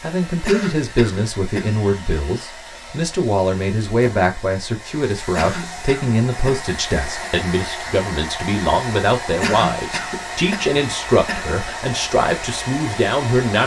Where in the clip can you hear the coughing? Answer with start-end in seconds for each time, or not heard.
0.5-1.8, 5.3-7.3, 9.4-11.6.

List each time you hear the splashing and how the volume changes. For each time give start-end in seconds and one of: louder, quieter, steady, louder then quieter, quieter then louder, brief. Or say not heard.
not heard.